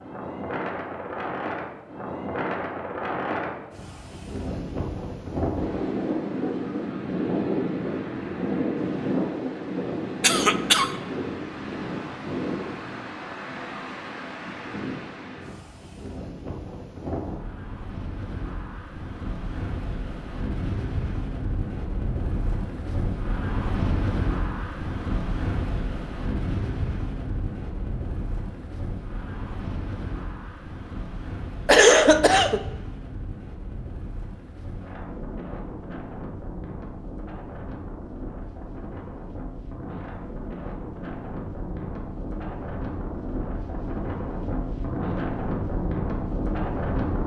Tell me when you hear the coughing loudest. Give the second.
32 s.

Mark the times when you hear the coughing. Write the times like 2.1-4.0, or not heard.
10.2-10.9, 31.6-32.6.